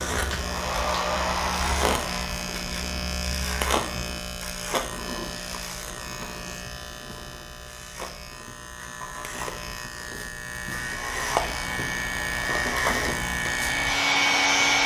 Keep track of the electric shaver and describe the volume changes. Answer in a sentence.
The loudness of the electric shaver goes down, then up.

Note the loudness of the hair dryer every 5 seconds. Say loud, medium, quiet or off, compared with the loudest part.
loud, off, loud.